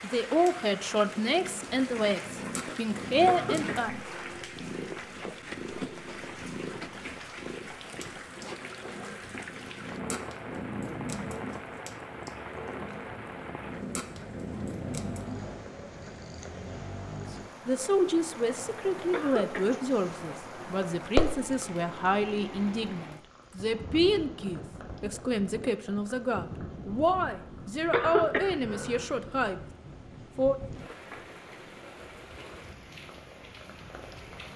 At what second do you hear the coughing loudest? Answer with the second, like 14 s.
28 s.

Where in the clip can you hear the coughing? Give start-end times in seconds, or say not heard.
3.2-4.4, 19.1-19.8, 27.9-29.1.